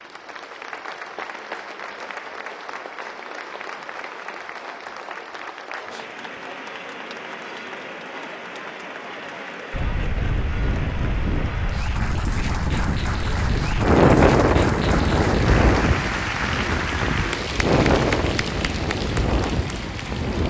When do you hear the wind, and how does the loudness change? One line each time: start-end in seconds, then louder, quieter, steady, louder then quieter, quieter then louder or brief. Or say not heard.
9.7-20.4 louder then quieter.